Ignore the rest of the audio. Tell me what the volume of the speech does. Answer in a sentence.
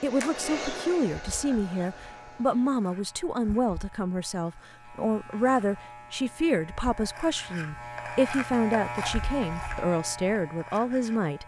The loudness of the speech stays about the same.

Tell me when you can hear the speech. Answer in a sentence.
The speech can be heard from 0.0 to 11.4 s.